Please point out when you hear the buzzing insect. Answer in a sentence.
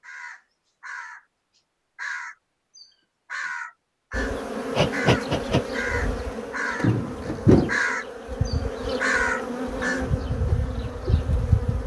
The buzzing insect can be heard from 4.1 to 11.8 s.